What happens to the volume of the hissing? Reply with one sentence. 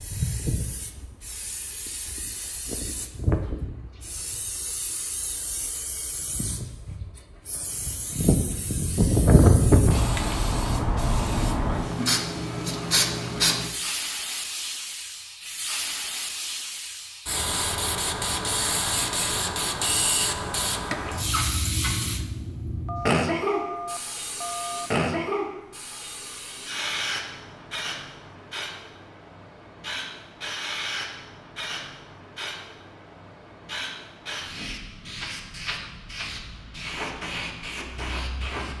The volume of the hissing goes up, then down.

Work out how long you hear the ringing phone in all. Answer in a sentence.
The ringing phone can be heard for 2 seconds in total.